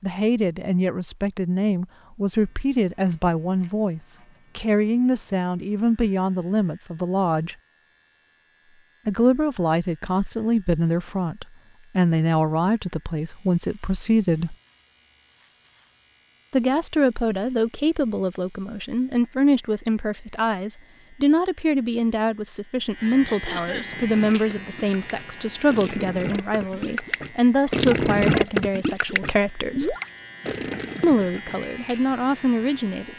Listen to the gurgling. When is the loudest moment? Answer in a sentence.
The loudest moment of the gurgling is at 28 seconds.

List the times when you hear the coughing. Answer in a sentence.
The coughing can be heard from 23.2 to 23.9 s.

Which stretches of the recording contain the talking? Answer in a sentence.
You can hear the talking from 0.0 to 7.5 s, from 9.1 to 14.6 s, from 16.5 to 29.9 s and from 31.0 to 33.1 s.